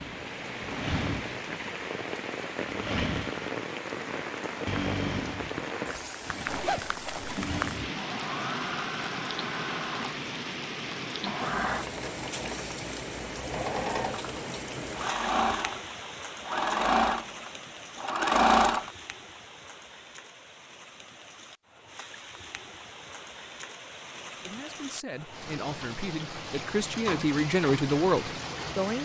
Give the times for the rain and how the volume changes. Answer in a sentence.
The rain can be heard from 0.0 to 28.9 s, getting quieter then louder.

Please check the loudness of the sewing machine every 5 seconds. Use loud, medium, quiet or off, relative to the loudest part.
medium, medium, medium, loud, off, off.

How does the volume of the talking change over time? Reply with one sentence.
The loudness of the talking goes up.